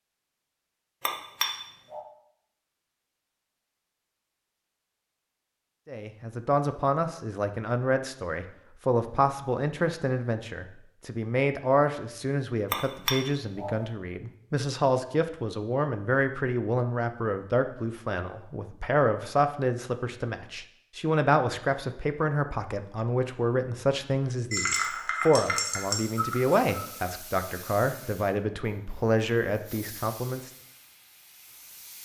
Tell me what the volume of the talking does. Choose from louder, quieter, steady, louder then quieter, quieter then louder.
steady.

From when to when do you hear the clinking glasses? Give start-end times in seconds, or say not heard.
1.1-2.0, 12.7-13.8, 24.5-26.9.